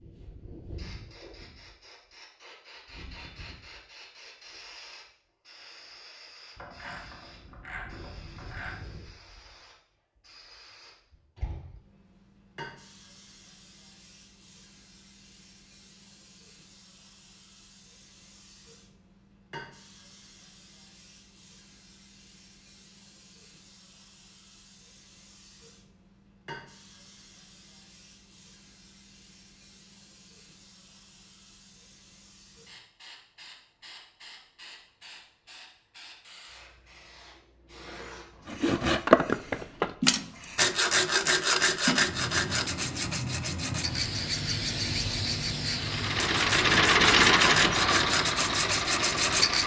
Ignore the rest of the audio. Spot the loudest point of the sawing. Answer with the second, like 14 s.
39 s.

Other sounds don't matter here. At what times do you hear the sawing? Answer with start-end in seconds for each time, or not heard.
38.5-49.6.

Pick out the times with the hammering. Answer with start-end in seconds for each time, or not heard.
not heard.